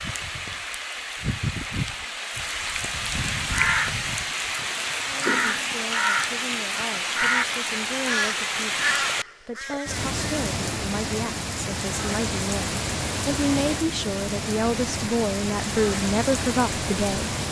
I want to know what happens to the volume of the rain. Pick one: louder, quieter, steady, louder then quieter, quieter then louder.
steady.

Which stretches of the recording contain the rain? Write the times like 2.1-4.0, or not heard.
0.0-17.4.